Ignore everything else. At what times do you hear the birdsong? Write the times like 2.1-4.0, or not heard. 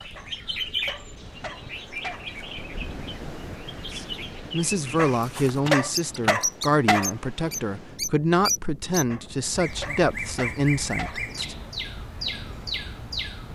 0.0-13.5.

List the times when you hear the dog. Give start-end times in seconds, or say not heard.
0.1-2.3, 5.0-7.1, 9.1-11.2.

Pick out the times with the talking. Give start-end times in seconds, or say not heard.
4.0-11.6.